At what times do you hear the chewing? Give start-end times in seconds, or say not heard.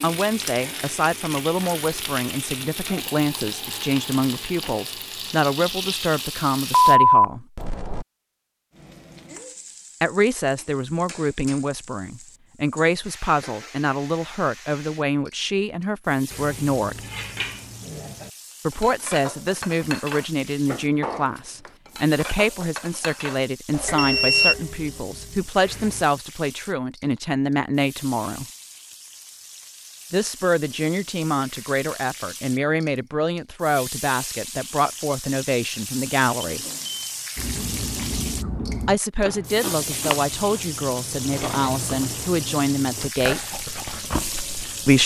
37.4-45.0.